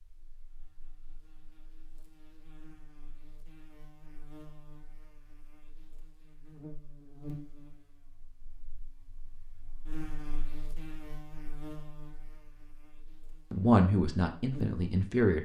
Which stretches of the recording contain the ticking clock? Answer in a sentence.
You can't hear the ticking clock here.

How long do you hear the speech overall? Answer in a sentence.
The speech can be heard for 2 seconds in total.